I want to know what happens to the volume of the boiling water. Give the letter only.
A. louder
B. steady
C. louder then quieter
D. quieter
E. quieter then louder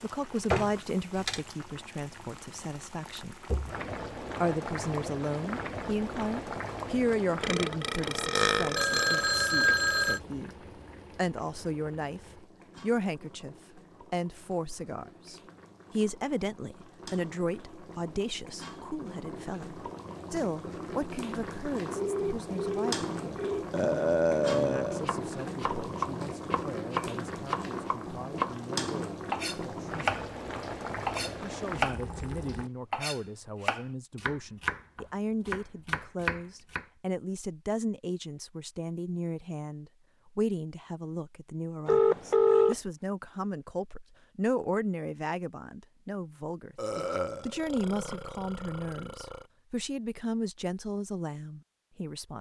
E.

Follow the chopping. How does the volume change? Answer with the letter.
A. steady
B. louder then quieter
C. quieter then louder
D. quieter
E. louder
A.